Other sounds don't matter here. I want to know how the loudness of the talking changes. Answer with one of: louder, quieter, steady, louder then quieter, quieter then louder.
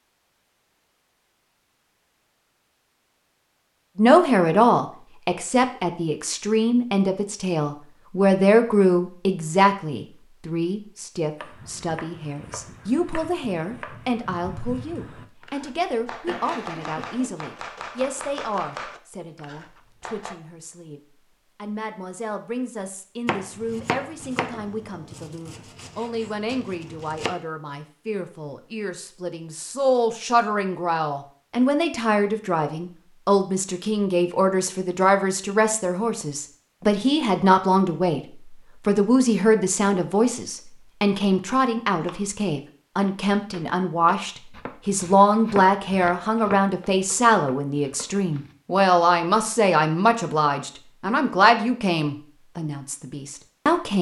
quieter then louder.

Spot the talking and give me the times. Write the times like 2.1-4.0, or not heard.
4.0-53.9.